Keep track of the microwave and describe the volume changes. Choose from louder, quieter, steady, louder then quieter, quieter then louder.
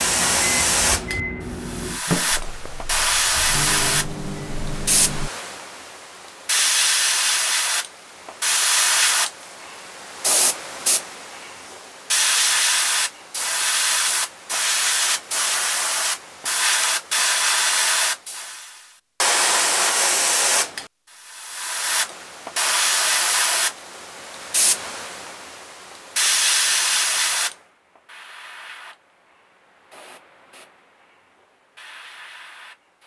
quieter then louder.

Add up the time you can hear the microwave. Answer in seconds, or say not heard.
5 s.